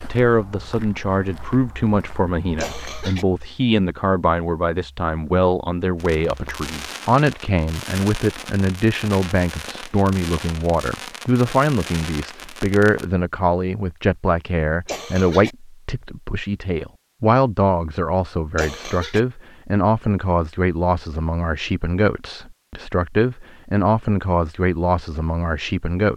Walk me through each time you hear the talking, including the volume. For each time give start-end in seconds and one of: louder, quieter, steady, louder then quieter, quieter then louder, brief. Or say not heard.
0.0-26.1 steady.